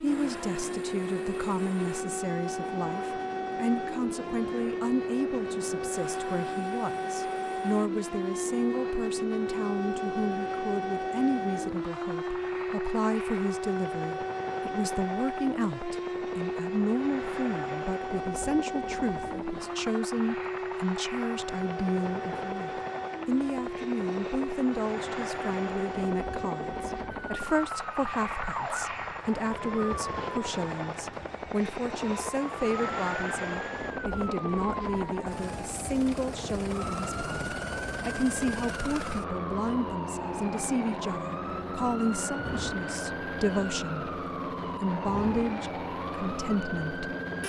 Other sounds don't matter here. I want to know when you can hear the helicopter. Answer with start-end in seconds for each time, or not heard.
0.0-47.4.